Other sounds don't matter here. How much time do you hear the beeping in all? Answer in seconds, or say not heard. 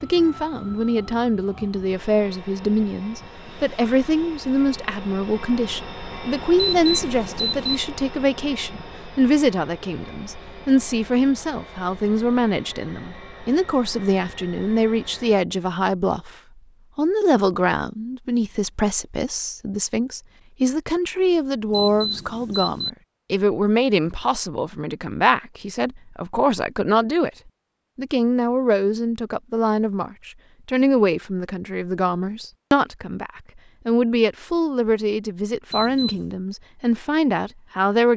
3 s.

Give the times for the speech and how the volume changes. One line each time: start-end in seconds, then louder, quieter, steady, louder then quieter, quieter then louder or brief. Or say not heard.
0.0-16.3 steady
16.9-27.3 steady
27.9-38.1 steady.